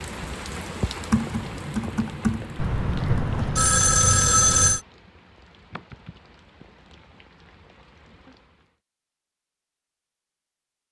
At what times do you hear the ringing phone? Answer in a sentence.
The ringing phone can be heard from 2.5 to 4.8 s.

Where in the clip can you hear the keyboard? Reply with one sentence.
The keyboard can be heard from 1.1 to 3.5 s and from 5.7 to 6.7 s.